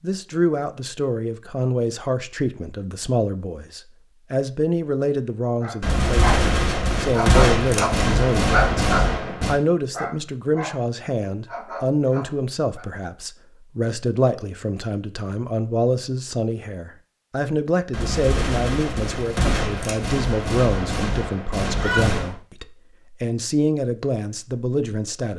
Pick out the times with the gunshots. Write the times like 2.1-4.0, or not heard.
5.8-9.6, 17.9-22.4.